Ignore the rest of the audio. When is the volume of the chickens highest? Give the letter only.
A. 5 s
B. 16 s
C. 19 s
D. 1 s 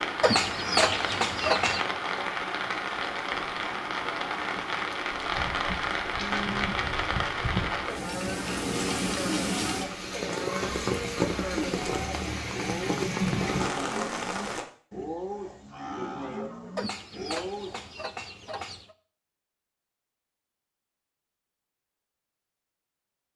D.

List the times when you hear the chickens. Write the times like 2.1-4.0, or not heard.
0.2-1.9, 16.8-18.9.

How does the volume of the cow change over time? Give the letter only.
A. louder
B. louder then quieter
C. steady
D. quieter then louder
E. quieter
C.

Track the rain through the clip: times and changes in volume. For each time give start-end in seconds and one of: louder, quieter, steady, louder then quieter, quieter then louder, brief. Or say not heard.
0.0-14.7 steady.